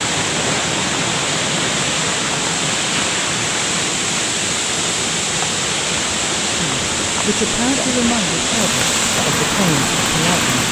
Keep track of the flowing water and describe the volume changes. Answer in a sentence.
The volume of the flowing water stays about the same.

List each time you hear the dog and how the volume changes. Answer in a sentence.
The dog can't be heard in this clip.